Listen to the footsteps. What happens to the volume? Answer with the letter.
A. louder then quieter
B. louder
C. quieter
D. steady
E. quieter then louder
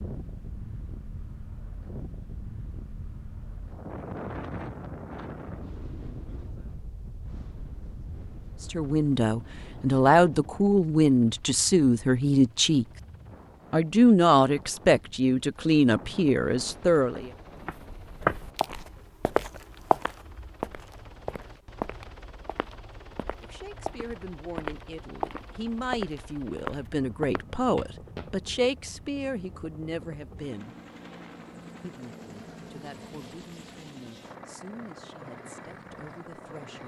E.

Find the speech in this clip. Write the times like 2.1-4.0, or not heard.
8.7-12.8, 13.7-17.3, 23.4-30.8, 31.8-36.8.